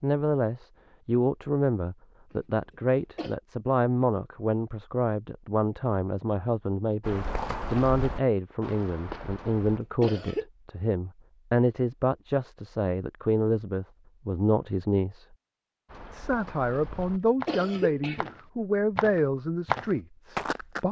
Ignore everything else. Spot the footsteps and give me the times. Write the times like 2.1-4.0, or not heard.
7.0-9.8, 15.9-20.8.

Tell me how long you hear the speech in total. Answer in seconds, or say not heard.
20 s.